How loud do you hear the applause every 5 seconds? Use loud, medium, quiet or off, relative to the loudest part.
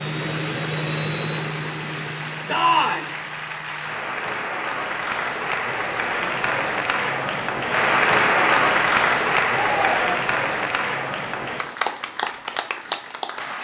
medium, loud, medium.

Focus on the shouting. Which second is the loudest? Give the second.
3 s.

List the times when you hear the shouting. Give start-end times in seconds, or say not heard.
2.5-3.1, 9.5-10.2.